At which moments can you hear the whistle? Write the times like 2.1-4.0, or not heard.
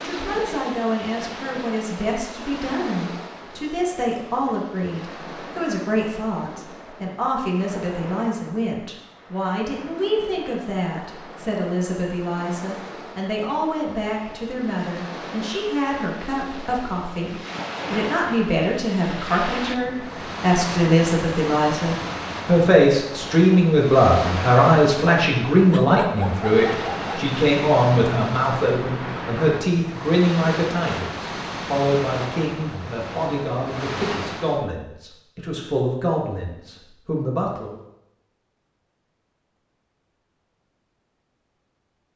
not heard.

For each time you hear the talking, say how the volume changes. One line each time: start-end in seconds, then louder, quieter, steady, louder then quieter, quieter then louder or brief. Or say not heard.
0.0-37.8 louder then quieter.